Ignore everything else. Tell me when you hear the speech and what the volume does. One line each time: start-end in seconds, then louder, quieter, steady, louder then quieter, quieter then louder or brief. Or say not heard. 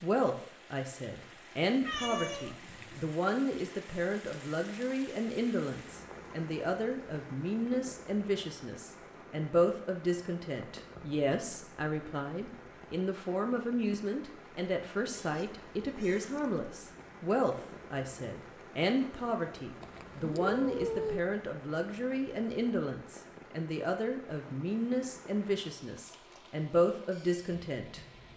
0.0-28.0 steady.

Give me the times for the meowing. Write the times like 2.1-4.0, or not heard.
1.8-3.0, 15.2-16.6, 19.8-21.2.